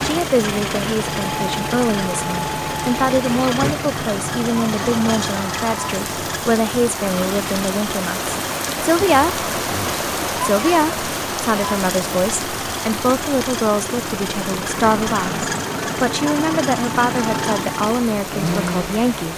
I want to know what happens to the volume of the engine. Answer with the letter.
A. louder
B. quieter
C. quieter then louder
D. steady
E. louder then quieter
C.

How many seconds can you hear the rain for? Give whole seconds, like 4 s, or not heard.
19 s.